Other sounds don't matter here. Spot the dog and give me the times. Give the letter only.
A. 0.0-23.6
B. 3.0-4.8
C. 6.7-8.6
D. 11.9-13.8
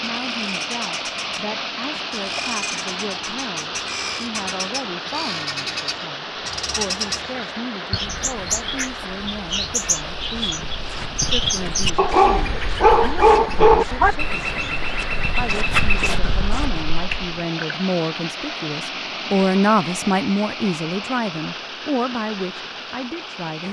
D.